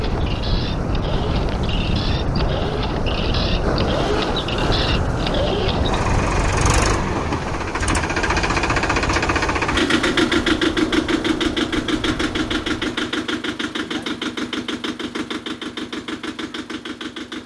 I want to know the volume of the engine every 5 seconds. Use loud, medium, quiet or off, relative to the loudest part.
medium, loud, loud, medium.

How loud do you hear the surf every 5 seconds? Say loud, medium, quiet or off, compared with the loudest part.
loud, loud, medium, off.